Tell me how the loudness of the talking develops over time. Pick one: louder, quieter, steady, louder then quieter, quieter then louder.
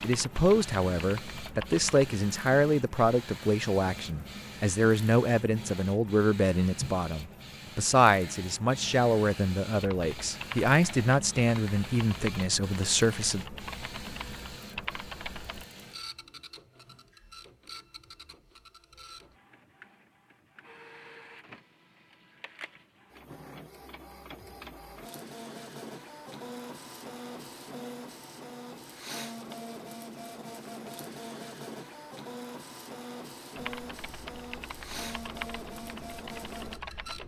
steady.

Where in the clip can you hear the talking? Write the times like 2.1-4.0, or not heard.
0.0-13.4.